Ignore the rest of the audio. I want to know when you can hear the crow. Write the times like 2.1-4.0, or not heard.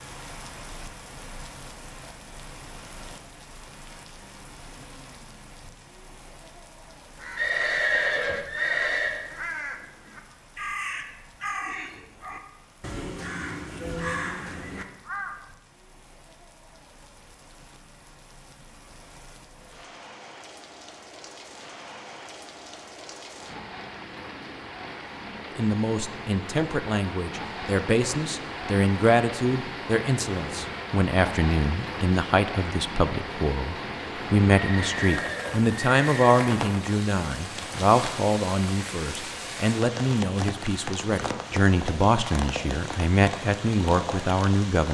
7.2-15.4.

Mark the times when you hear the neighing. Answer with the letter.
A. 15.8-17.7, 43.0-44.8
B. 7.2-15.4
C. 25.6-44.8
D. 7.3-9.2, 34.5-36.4
D.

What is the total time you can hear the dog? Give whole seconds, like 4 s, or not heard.
not heard.